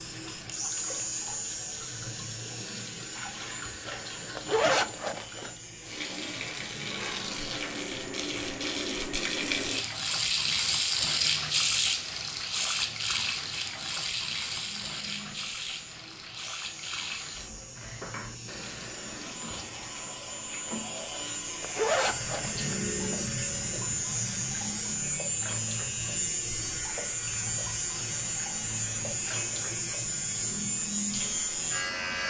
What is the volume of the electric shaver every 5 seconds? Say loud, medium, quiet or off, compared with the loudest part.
medium, quiet, quiet, quiet, loud, loud, loud.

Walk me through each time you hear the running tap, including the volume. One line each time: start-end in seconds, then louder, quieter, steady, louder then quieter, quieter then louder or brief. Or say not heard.
0.0-32.2 louder then quieter.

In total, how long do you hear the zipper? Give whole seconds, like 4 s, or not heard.
3 s.